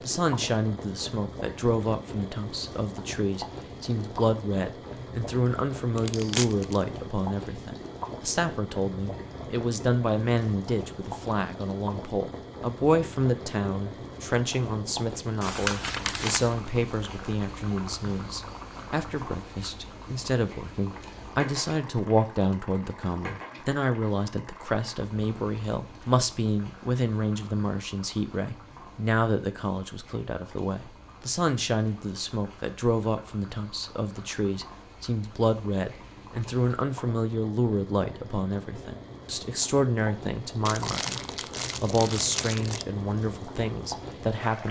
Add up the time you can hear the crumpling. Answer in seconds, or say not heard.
4 s.